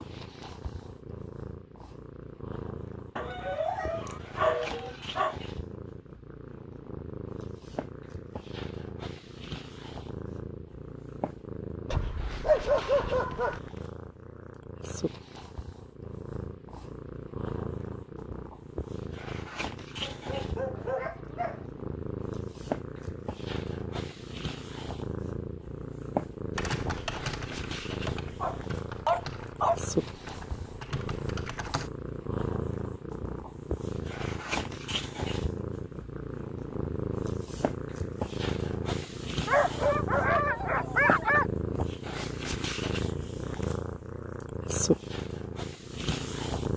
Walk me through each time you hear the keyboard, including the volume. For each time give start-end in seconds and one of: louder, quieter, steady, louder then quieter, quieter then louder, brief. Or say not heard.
26.6-31.9 quieter then louder.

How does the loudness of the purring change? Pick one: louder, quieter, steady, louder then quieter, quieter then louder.
louder.